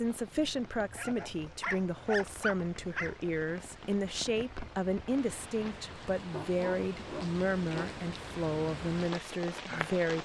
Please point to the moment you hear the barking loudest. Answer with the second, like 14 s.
2 s.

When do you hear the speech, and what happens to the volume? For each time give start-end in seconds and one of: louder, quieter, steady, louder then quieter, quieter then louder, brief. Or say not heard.
0.0-10.1 steady.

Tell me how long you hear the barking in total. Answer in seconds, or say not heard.
4 s.